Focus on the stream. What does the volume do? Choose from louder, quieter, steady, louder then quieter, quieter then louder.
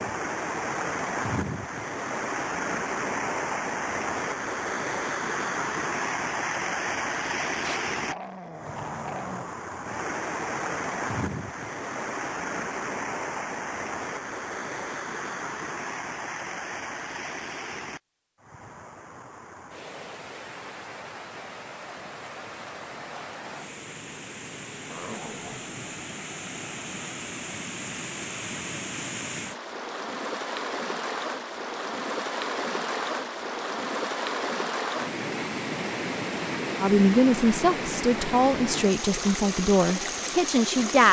quieter then louder.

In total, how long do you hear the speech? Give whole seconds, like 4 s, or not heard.
4 s.